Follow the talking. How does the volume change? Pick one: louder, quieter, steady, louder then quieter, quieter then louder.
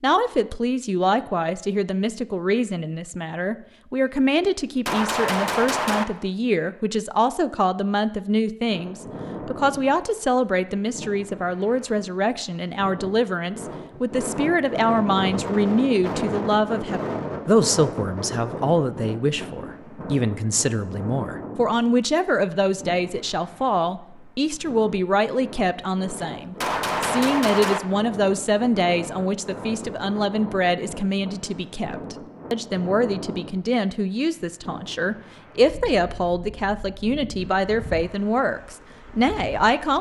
steady.